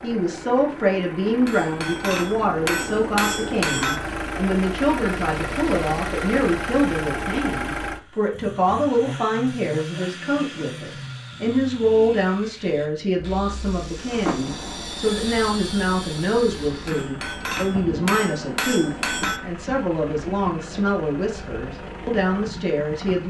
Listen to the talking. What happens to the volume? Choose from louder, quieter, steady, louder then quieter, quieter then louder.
steady.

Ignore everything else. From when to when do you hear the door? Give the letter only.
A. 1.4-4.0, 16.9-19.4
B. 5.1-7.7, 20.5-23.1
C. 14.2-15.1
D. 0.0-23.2
C.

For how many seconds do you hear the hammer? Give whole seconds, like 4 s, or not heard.
5 s.